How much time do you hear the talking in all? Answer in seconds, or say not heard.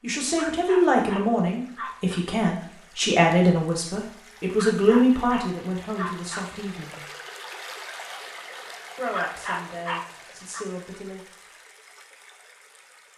9 s.